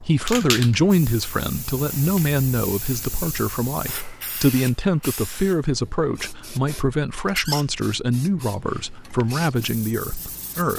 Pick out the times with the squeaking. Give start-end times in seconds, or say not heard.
7.2-7.7.